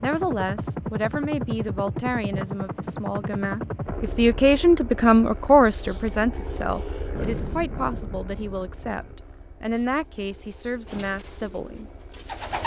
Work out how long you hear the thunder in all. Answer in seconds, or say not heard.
2 s.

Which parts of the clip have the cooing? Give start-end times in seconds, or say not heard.
10.8-12.6.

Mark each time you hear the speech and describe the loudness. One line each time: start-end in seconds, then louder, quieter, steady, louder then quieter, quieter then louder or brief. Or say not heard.
0.0-11.8 louder then quieter.